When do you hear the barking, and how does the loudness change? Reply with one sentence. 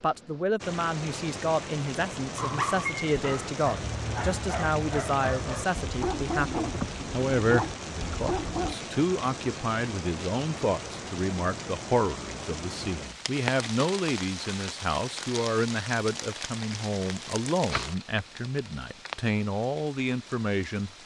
The barking can be heard from 2.4 to 8.8 s, at a steady volume.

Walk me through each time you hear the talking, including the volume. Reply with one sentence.
You can hear the talking from 0.0 to 20.9 s, at a steady volume.